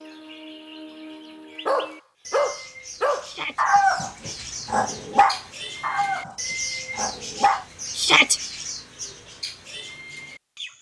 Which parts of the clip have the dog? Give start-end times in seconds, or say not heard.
1.6-7.7.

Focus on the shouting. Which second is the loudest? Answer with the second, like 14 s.
8 s.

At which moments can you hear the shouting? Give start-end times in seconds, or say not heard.
3.2-3.6, 8.0-8.4.